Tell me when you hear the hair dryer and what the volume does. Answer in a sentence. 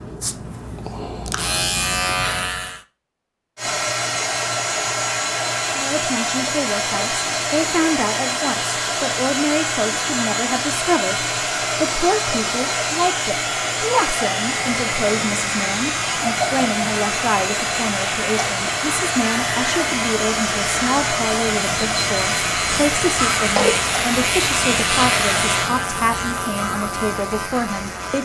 You can hear the hair dryer from 3.5 to 25.7 s, at a steady volume.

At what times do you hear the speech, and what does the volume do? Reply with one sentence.
The speech can be heard from 5.8 to 28.2 s, at a steady volume.